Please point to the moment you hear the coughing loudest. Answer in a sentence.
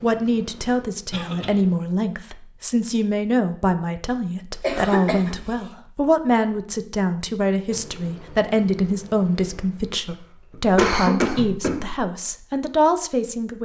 The loudest moment of the coughing is at 11 seconds.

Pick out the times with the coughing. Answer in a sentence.
The coughing can be heard from 1.1 to 1.6 s, from 4.6 to 5.5 s and from 9.7 to 12.0 s.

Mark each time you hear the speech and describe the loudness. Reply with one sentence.
The speech can be heard from 0.0 to 13.6 s, at a steady volume.